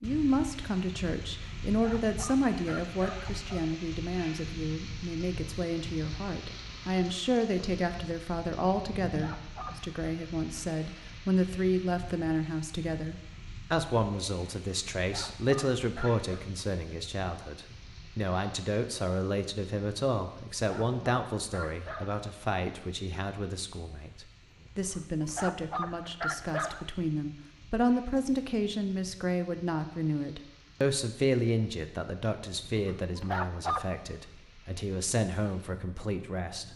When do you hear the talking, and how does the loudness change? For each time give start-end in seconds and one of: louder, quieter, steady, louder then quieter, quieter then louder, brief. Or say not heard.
0.0-36.7 steady.